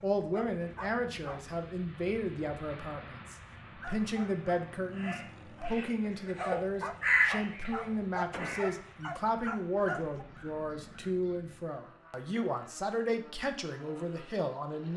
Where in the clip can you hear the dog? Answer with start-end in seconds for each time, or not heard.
0.0-1.5, 3.8-10.2.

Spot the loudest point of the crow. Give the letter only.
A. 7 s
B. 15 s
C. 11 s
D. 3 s
A.